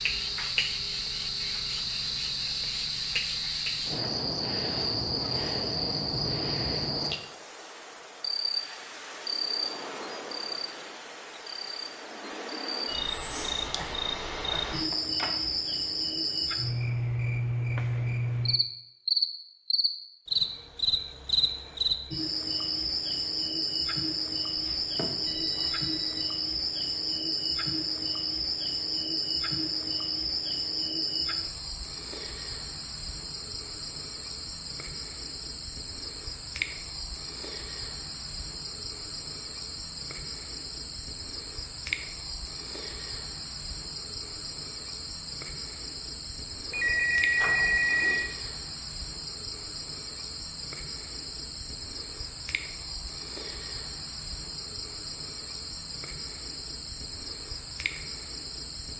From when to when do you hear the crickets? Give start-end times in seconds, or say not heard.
0.0-58.9.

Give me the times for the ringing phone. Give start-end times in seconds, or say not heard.
14.9-15.3, 24.6-26.2, 46.7-48.3.